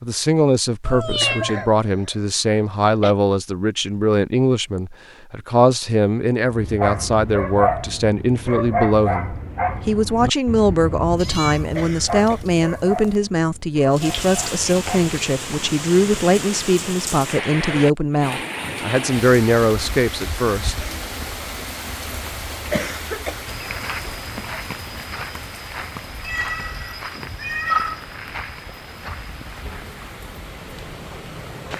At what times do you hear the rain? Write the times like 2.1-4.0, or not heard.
13.9-31.7.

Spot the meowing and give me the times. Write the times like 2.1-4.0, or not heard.
0.8-1.7, 11.2-13.0, 26.2-28.0.